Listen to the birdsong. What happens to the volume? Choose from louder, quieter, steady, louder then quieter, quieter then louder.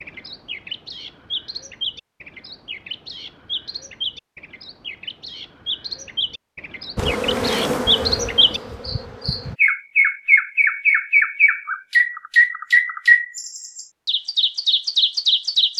louder.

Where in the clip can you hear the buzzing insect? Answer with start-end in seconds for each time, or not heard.
7.0-9.6.